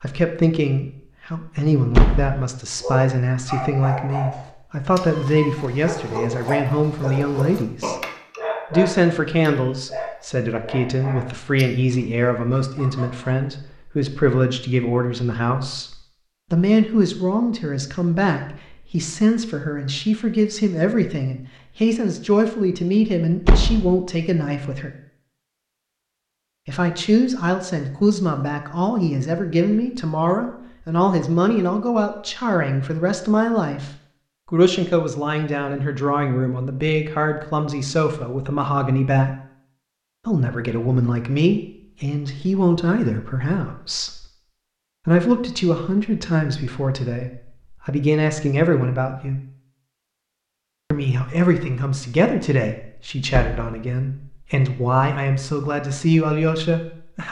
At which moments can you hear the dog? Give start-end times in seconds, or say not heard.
2.8-13.3.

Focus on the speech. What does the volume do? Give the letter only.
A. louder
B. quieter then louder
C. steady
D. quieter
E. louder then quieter
C.